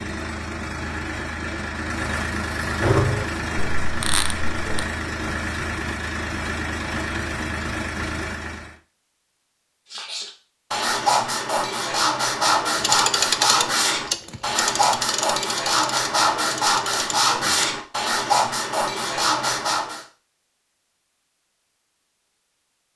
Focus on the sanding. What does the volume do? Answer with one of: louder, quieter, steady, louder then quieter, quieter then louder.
steady.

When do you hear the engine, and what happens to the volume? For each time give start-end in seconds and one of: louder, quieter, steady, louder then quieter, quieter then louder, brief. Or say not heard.
0.0-8.8 steady.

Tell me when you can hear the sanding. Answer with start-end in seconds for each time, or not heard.
9.9-20.1.